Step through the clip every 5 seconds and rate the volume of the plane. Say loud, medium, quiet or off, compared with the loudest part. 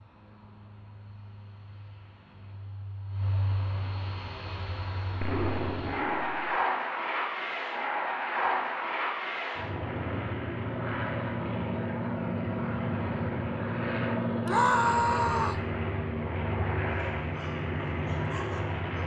medium, loud, loud, loud.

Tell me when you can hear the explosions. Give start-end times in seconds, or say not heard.
5.2-6.6.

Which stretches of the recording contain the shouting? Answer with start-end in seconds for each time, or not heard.
14.4-15.7.